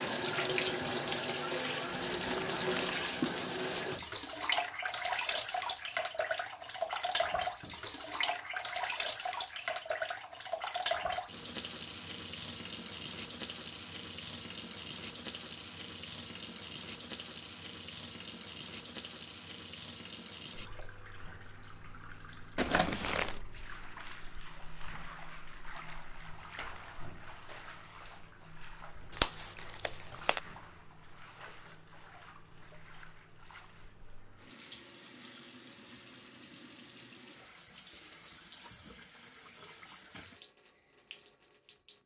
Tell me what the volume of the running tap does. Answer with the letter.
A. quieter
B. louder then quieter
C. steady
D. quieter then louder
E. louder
A.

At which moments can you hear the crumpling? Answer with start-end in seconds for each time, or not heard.
1.9-3.9, 22.6-23.4, 29.1-30.4.